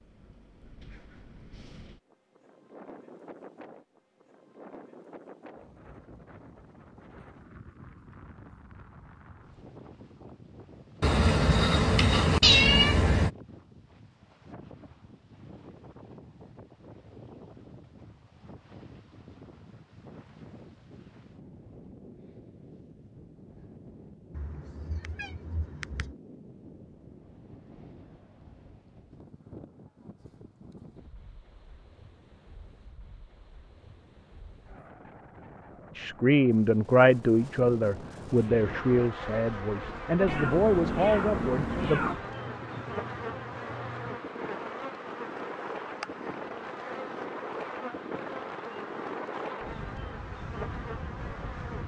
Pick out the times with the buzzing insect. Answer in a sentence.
You can hear the buzzing insect from 38.2 to 51.8 s.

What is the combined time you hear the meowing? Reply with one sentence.
You can hear the meowing for 6 seconds altogether.